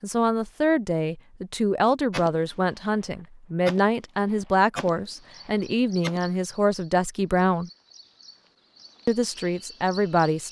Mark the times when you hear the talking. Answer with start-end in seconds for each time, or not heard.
0.0-7.7, 9.1-10.4.